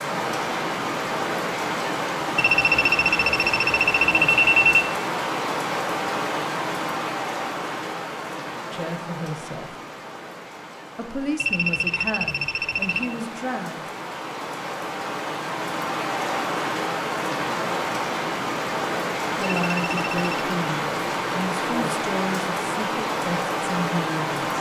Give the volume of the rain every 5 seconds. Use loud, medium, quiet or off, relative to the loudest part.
loud, loud, medium, loud, loud.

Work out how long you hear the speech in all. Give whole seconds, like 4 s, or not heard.
9 s.